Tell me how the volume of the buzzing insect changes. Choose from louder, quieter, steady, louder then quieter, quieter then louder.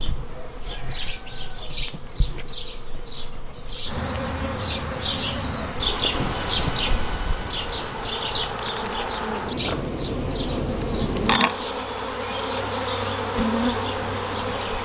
louder.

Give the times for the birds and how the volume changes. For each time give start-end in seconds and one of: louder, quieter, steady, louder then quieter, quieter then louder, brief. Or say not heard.
0.0-14.8 louder then quieter.